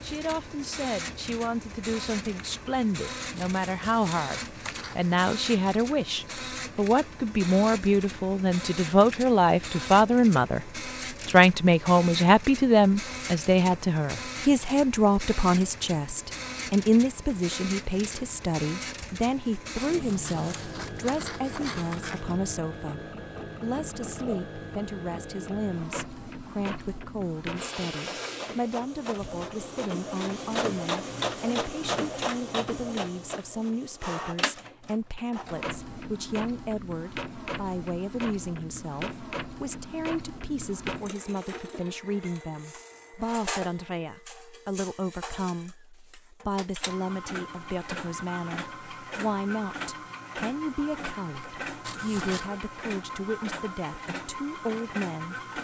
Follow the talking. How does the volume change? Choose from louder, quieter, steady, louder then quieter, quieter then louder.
quieter.